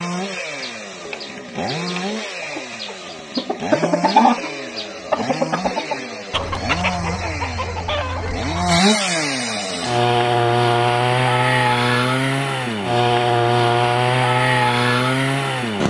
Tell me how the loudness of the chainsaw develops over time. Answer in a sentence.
The loudness of the chainsaw goes up.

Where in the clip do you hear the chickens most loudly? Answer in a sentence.
The volume of the chickens peaks at 4 seconds.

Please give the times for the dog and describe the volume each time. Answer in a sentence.
You can't hear the dog here.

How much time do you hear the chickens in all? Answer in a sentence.
You can hear the chickens for 8 seconds altogether.